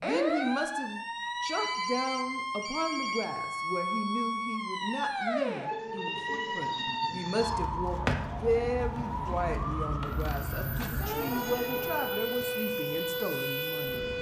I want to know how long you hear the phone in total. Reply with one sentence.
You can hear the phone for 4 seconds altogether.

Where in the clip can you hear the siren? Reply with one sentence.
The siren can be heard from 0.0 to 14.1 s.